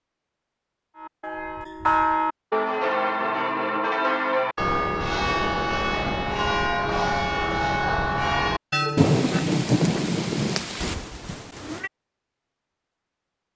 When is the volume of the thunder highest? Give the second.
9 s.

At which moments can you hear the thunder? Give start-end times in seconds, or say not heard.
8.9-10.9.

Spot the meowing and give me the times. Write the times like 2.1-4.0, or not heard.
10.8-11.9.